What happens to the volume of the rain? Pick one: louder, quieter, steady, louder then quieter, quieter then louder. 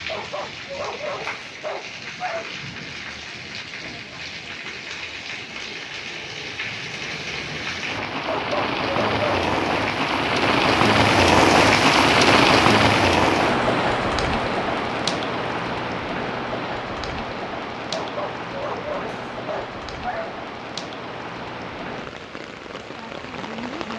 louder then quieter.